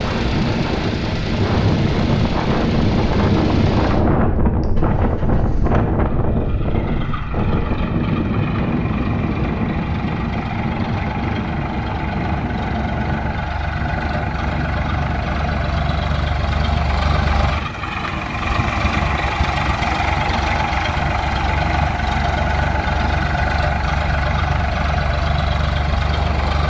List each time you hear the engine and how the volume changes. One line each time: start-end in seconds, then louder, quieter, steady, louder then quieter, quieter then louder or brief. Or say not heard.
0.0-26.6 louder.